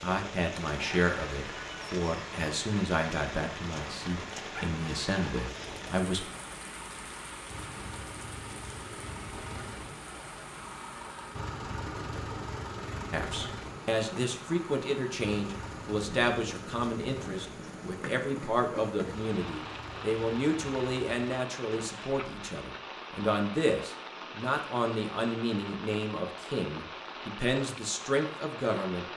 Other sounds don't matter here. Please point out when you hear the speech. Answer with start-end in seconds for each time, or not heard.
0.0-6.2, 13.1-29.1.